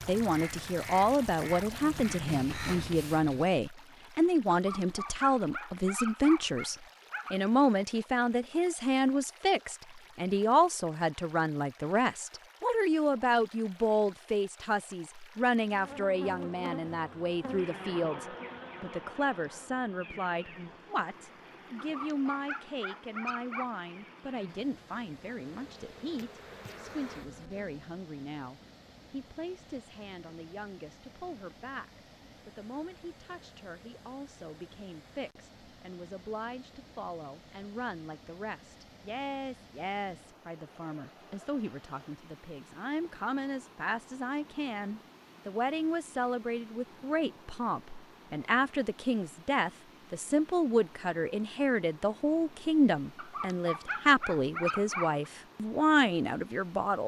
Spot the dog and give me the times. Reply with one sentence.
The dog can be heard from 4.5 to 7.4 s, from 21.8 to 23.7 s and from 53.1 to 55.2 s.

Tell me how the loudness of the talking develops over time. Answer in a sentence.
The volume of the talking goes down, then up.